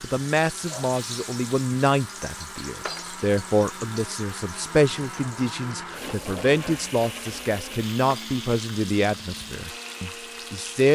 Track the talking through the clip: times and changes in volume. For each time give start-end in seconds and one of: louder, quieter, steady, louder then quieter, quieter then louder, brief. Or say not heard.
0.0-10.9 steady.